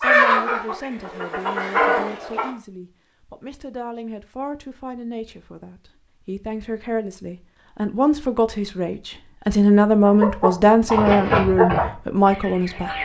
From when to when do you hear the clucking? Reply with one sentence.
The clucking can be heard from 0.0 to 2.5 s and from 10.1 to 13.0 s.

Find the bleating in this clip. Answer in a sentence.
The bleating can't be heard in this clip.